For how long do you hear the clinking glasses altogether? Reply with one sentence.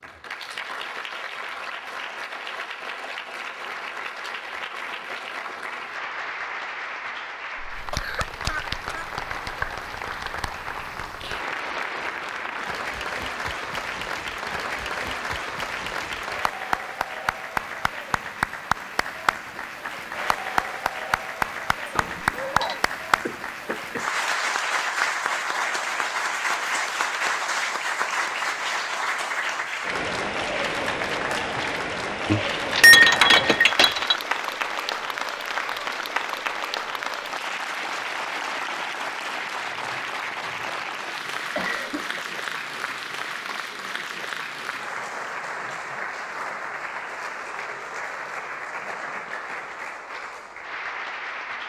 You can hear the clinking glasses for 3 seconds altogether.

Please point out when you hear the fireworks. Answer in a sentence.
You can't hear the fireworks here.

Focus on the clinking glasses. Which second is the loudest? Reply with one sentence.
The loudest moment of the clinking glasses is at 33 seconds.